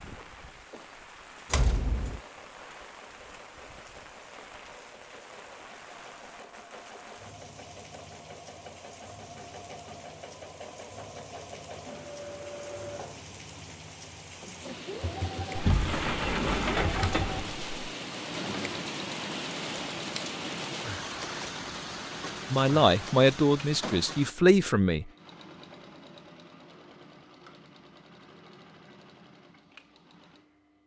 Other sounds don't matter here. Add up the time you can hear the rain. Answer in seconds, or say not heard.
24 s.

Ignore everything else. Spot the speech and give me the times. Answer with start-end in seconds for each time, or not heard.
22.5-25.1.